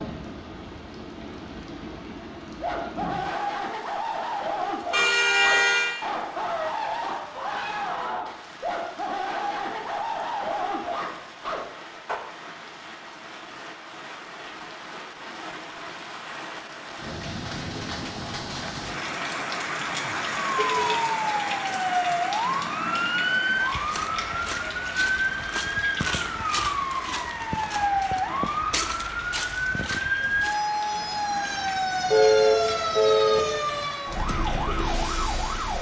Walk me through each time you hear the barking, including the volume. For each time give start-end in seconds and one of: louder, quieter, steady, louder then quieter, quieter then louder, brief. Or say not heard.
2.6-12.2 steady.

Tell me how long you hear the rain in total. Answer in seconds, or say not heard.
36 s.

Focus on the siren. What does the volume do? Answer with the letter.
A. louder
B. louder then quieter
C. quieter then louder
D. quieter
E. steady
E.